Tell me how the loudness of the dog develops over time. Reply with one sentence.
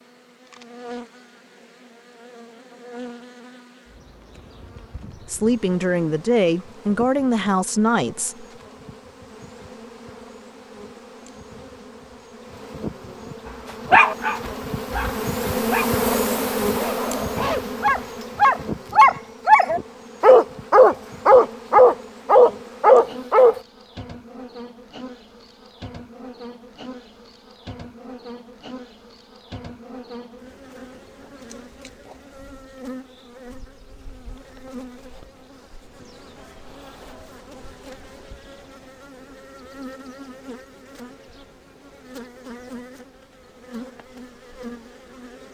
The loudness of the dog goes up.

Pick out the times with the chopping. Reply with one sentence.
The chopping can't be heard in this clip.